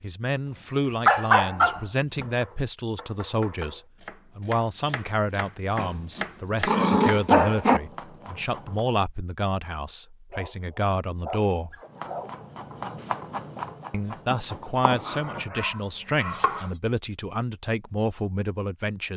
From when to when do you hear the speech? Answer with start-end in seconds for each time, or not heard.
0.0-11.8, 13.9-19.1.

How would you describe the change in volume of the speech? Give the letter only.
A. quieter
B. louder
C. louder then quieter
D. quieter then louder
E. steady
E.